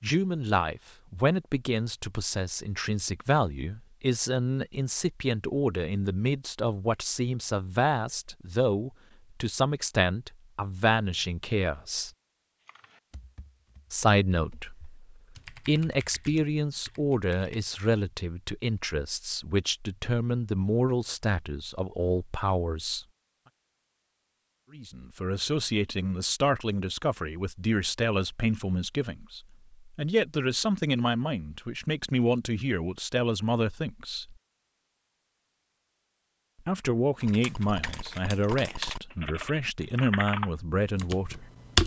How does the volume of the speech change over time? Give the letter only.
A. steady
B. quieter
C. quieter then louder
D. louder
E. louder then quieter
A.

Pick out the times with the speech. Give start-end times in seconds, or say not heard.
0.0-12.1, 13.9-23.1, 24.7-34.4, 36.6-41.5.